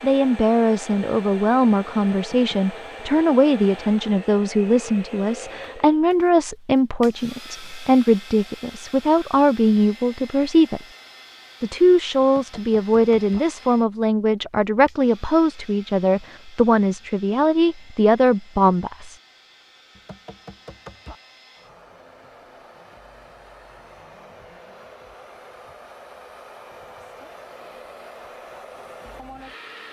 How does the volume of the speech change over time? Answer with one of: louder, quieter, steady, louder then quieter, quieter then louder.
steady.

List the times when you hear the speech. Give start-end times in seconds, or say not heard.
0.0-10.8, 11.6-19.1.